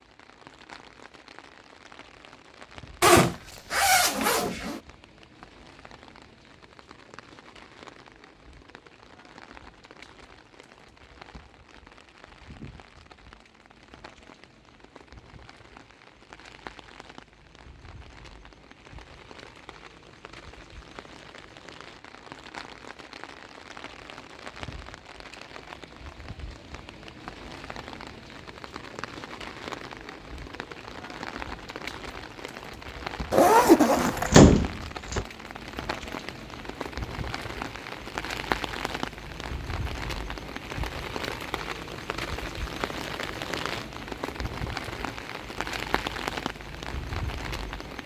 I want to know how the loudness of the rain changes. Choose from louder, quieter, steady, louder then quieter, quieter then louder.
louder.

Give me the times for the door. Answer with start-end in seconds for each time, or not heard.
34.0-35.2.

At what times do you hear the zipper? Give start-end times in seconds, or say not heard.
3.0-4.8, 33.3-34.4.